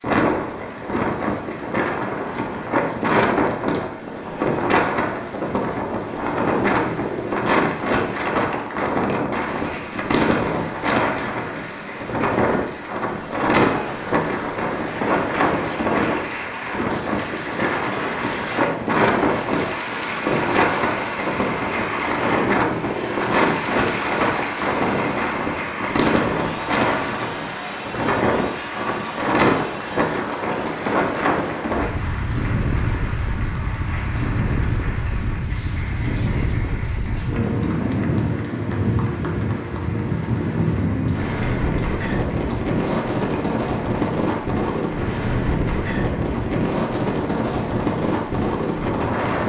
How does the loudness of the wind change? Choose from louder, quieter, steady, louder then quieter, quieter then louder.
steady.